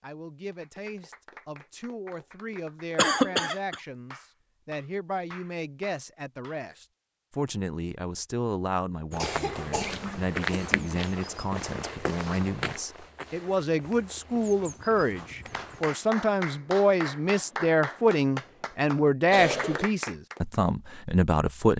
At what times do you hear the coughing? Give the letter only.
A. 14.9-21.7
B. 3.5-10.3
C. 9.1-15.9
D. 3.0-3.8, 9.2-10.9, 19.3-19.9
D.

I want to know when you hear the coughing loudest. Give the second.
3 s.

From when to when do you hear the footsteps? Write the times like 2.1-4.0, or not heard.
9.1-15.9.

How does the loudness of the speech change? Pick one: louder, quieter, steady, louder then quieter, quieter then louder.
louder.